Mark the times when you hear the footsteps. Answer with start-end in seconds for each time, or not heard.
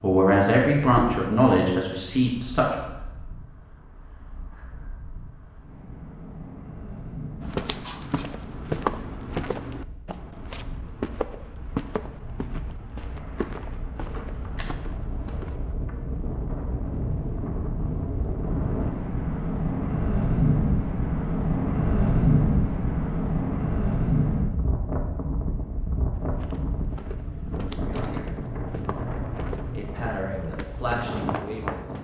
7.4-15.8, 26.1-31.9.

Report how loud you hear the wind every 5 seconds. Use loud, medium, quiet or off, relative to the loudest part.
quiet, quiet, quiet, medium, loud, medium, medium.